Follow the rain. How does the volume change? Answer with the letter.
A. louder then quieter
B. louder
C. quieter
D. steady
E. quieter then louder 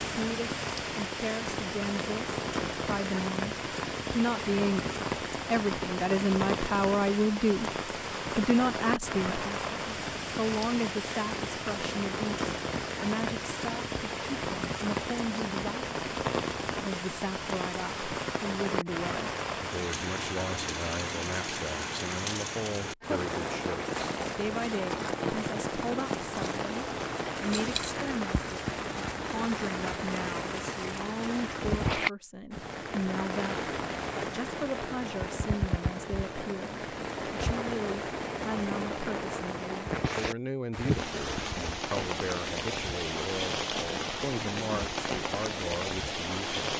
D.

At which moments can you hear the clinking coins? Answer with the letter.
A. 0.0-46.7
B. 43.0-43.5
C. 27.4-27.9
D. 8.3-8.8
C.